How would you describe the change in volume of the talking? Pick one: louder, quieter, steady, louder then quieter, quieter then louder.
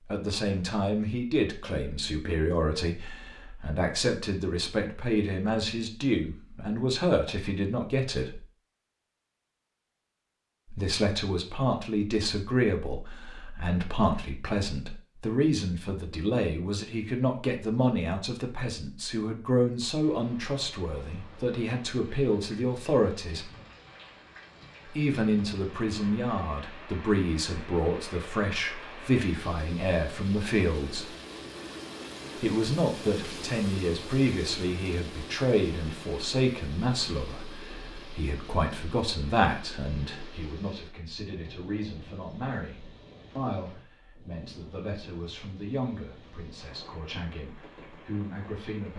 quieter.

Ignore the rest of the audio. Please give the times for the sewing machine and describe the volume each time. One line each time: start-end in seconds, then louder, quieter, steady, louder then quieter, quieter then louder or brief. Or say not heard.
not heard.